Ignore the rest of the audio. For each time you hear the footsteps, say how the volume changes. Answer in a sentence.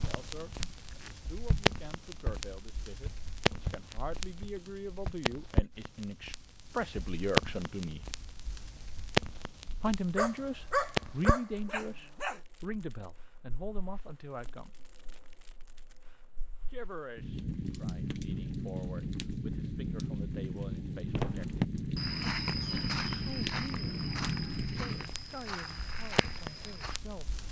The footsteps can be heard from 0.0 to 5.2 s, getting louder then quieter; and from 21.1 to 27.0 s, getting quieter.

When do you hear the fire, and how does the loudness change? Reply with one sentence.
You can hear the fire from 0.0 to 27.4 s, getting quieter then louder.